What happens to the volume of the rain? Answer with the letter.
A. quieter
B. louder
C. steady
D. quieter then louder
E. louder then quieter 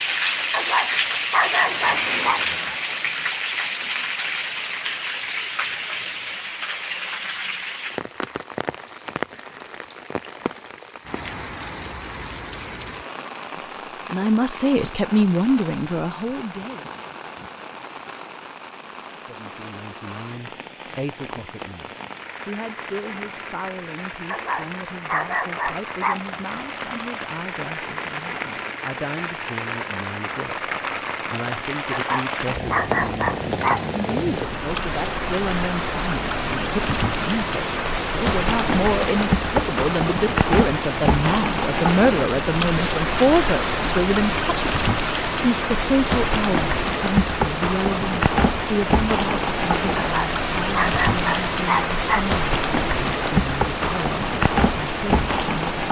D.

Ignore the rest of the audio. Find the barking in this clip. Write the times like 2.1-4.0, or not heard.
0.5-2.4, 24.3-26.2, 31.9-33.9, 50.0-52.2.